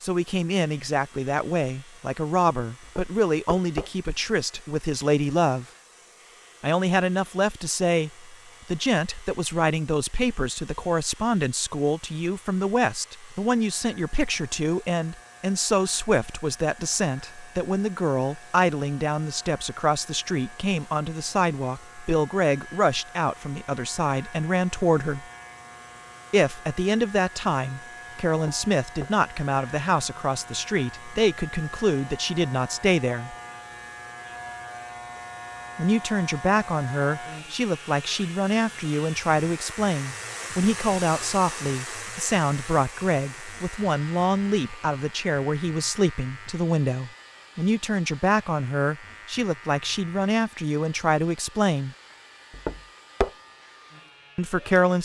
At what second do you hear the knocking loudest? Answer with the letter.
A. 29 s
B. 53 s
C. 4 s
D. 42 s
B.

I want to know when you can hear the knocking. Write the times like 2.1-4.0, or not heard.
2.8-3.9, 28.4-29.1, 52.5-53.3.